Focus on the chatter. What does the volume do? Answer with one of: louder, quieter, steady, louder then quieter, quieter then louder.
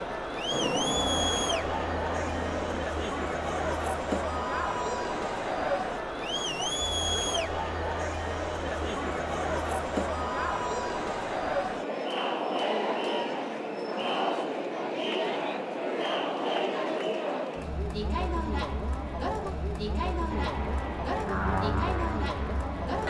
steady.